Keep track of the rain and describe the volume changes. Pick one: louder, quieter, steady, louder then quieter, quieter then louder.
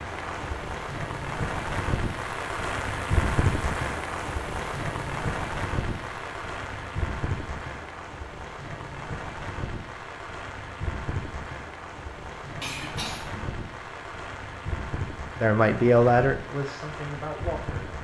quieter.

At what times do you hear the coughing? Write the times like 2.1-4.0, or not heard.
12.6-13.4.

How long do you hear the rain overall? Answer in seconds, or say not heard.
18 s.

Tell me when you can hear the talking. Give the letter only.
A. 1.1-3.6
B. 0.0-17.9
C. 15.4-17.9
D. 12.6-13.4
C.